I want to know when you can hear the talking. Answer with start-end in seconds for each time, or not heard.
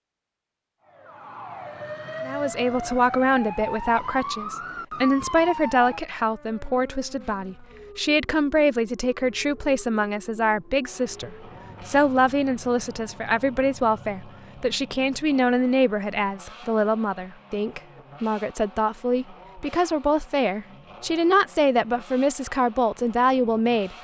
2.2-23.9.